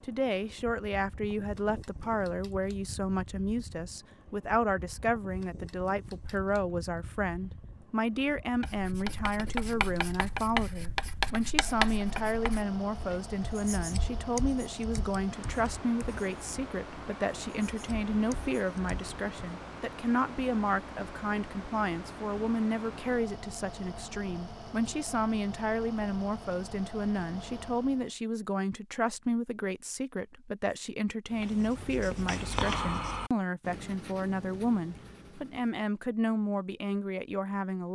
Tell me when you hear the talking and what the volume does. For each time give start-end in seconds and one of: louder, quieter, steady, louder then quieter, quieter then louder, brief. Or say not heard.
0.0-37.9 steady.